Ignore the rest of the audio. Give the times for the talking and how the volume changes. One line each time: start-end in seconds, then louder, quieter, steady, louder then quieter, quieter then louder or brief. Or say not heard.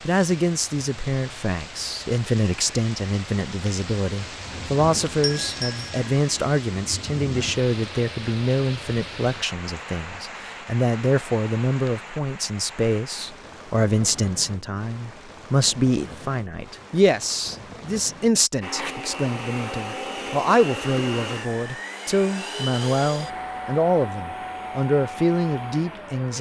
0.1-26.3 steady.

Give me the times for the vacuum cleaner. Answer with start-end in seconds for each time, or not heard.
18.6-26.3.